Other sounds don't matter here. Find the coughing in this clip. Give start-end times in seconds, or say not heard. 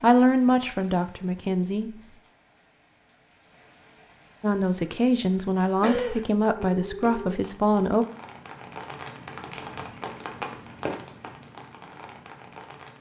5.8-6.2.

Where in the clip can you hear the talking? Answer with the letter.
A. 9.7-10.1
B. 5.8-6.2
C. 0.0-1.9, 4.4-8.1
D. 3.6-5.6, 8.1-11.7
C.